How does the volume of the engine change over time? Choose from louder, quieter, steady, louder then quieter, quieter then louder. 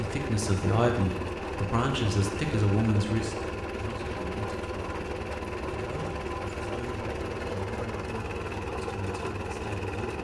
steady.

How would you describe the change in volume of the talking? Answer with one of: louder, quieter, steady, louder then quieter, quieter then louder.
quieter.